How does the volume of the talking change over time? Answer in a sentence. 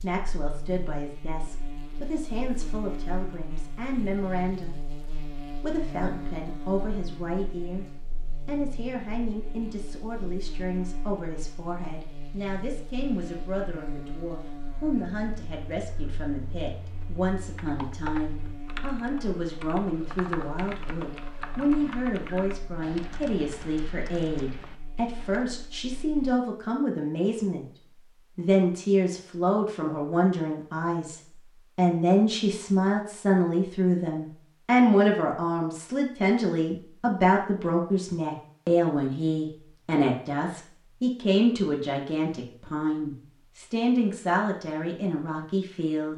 The volume of the talking goes up.